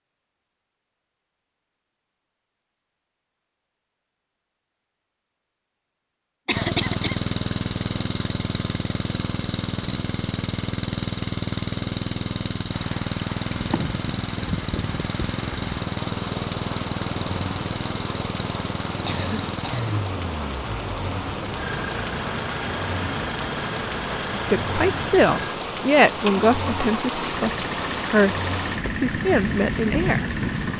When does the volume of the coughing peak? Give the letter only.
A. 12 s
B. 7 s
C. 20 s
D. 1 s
B.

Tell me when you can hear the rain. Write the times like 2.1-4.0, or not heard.
12.7-30.7.